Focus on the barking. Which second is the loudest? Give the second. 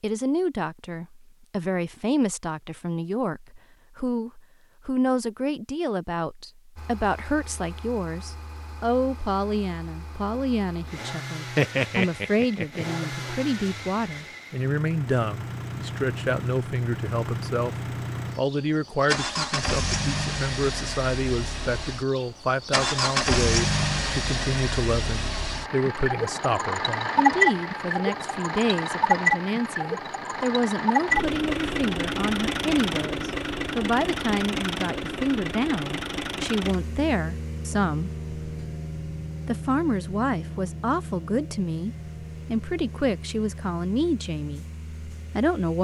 12 s.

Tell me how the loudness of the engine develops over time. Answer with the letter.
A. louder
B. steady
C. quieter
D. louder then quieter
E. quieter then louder
D.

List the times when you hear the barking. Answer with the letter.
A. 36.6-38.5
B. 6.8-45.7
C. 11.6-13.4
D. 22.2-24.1
C.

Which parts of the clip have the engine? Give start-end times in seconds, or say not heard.
6.8-45.7.